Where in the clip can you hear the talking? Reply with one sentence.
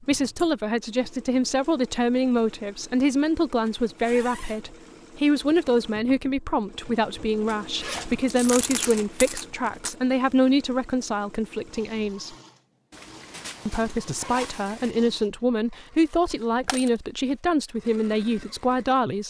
You can hear the talking from 0.0 to 12.3 s and from 13.7 to 19.2 s.